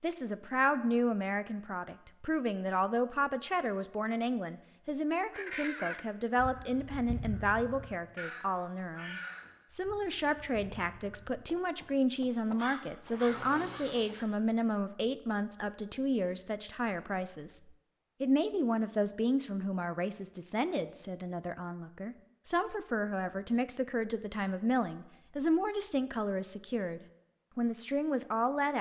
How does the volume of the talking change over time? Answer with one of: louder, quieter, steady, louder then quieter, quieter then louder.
steady.